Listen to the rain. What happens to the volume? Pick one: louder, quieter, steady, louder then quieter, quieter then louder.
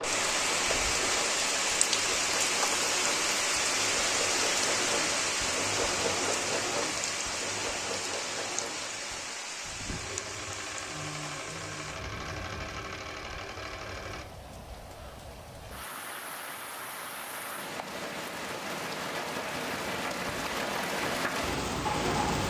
quieter then louder.